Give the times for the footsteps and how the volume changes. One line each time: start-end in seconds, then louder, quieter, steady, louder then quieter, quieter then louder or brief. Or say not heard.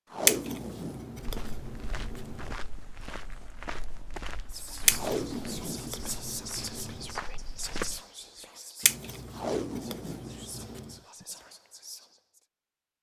1.1-8.0 quieter then louder.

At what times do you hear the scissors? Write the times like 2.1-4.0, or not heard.
0.2-2.5, 4.8-7.2, 8.8-11.0.